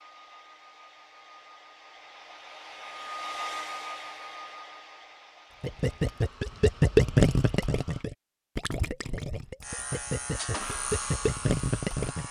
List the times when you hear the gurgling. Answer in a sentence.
You can hear the gurgling from 5.6 to 12.2 s.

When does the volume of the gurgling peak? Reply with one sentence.
The loudest moment of the gurgling is at 7 seconds.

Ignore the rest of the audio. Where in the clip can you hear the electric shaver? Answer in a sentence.
You can hear the electric shaver from 9.6 to 12.2 s.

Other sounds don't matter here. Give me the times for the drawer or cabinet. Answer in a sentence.
The drawer or cabinet can't be heard in this clip.